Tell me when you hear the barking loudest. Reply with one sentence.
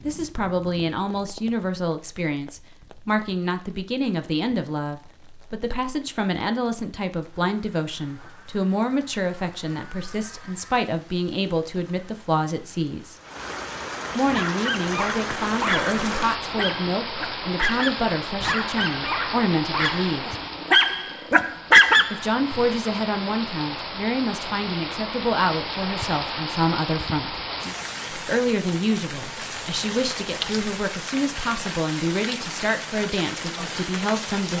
The volume of the barking peaks at 22 seconds.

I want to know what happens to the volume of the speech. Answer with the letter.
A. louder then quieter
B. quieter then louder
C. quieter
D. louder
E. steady
E.